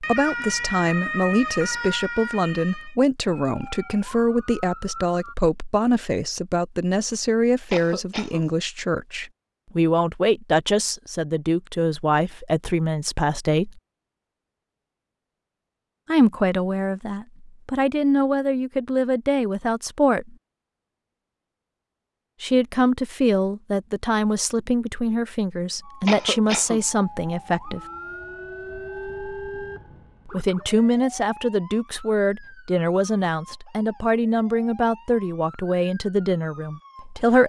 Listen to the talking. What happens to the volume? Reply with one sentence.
The volume of the talking stays about the same.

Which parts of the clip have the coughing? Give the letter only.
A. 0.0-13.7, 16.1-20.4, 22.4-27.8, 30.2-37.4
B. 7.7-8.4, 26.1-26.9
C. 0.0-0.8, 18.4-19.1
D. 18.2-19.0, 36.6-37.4
B.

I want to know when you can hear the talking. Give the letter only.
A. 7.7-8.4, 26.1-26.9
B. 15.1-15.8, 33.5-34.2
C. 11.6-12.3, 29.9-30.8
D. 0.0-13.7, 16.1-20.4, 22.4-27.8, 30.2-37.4
D.